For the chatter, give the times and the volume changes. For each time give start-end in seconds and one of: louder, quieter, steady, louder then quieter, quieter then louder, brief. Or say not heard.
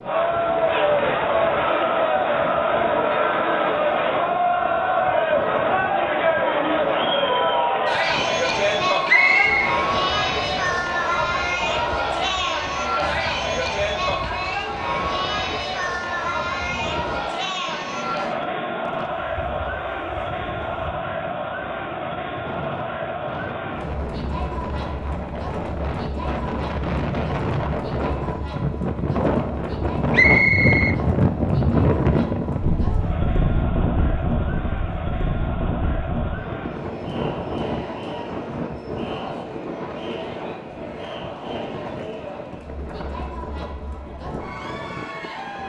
0.0-45.6 quieter.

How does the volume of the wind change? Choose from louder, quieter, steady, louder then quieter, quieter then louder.
louder then quieter.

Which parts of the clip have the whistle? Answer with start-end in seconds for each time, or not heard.
9.1-9.8, 30.1-30.9.